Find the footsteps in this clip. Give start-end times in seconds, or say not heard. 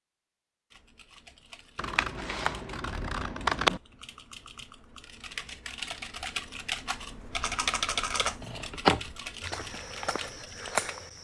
9.4-11.1.